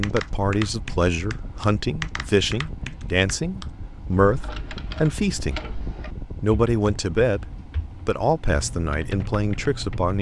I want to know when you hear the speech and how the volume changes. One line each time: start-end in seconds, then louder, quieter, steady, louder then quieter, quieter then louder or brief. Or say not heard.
0.0-5.7 steady
6.4-7.5 brief
8.1-10.1 brief.